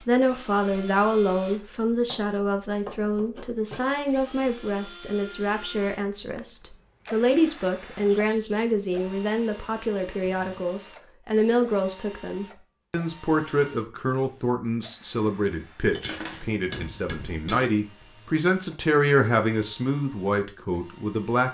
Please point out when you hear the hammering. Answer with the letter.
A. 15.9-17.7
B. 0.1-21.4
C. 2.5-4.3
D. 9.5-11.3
A.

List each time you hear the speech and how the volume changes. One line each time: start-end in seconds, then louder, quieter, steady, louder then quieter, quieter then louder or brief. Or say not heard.
0.1-21.4 steady.